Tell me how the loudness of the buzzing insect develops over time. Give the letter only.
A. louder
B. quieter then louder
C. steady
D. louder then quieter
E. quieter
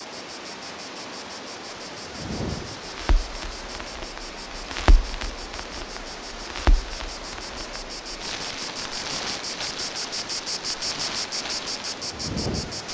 A.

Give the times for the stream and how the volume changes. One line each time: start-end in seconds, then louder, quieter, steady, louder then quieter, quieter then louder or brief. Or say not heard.
0.0-12.8 steady.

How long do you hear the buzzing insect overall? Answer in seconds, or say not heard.
13 s.